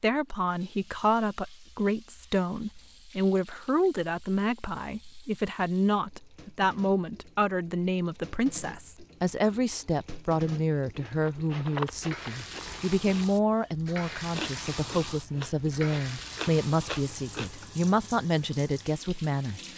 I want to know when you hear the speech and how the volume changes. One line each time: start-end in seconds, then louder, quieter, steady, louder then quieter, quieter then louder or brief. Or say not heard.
0.0-19.6 steady.